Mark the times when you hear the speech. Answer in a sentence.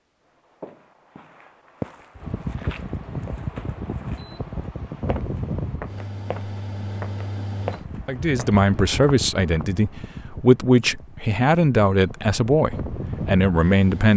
The speech can be heard from 8.1 to 14.1 s.